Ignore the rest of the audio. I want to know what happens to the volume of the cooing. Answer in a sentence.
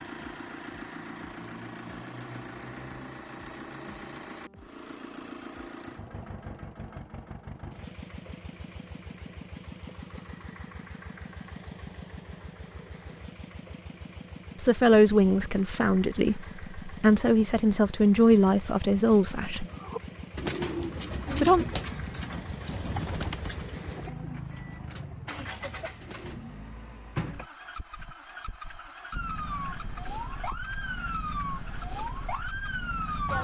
The volume of the cooing goes down.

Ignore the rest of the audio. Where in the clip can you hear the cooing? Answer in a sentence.
You can hear the cooing from 19.6 to 26.4 s.